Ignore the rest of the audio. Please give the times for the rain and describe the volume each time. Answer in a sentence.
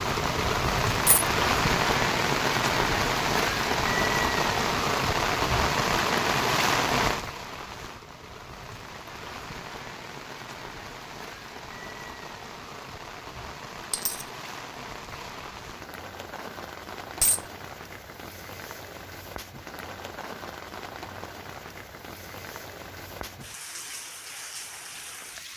The rain can be heard from 0.0 to 25.5 s, getting quieter.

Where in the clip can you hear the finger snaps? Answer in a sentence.
You can't hear the finger snaps here.